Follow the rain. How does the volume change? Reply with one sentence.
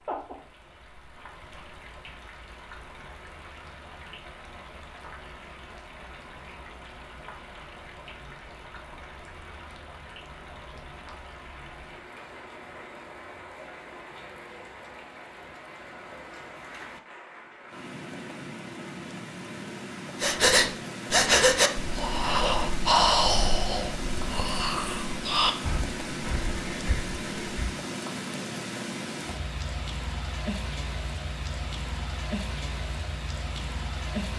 The volume of the rain goes up.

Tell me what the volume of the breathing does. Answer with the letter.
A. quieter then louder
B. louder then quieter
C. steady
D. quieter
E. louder
D.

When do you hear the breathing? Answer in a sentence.
You can hear the breathing from 20.2 to 27.8 s.